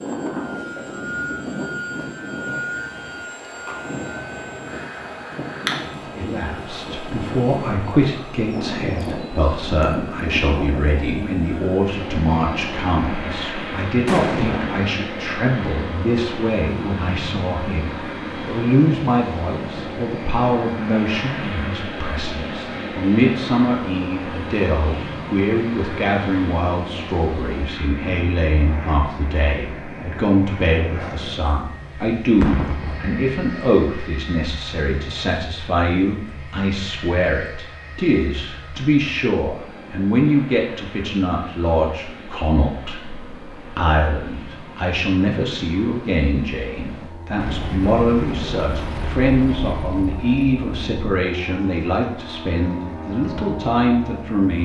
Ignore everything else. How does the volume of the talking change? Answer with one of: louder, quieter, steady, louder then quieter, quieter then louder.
steady.